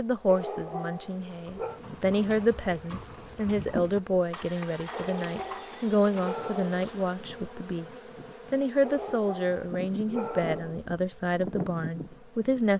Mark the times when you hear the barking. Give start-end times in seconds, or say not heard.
0.2-1.8, 4.9-6.9, 8.8-10.8.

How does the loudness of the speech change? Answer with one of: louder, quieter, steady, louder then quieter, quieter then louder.
steady.